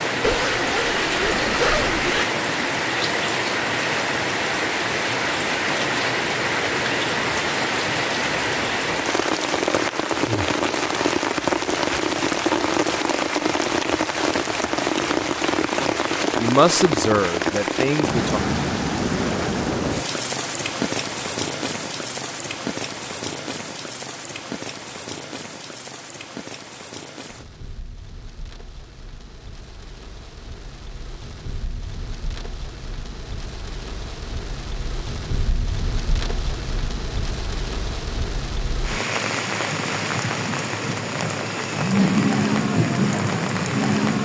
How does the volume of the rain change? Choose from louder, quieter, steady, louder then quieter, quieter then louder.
quieter then louder.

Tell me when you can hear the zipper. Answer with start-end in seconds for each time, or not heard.
0.2-2.2.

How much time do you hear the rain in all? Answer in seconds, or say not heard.
44 s.